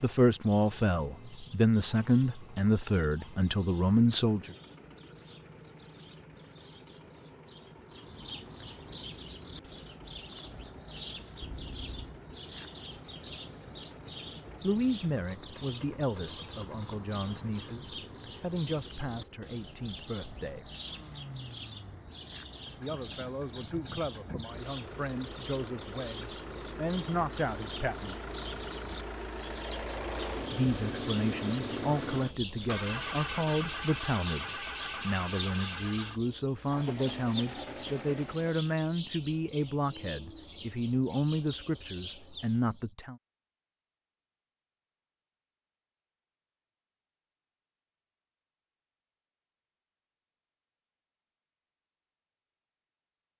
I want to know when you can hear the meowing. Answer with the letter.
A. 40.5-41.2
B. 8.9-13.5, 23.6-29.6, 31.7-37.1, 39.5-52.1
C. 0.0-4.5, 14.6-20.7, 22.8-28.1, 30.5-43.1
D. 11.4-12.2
D.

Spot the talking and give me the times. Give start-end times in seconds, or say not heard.
0.0-4.5, 14.6-20.7, 22.8-28.1, 30.5-43.1.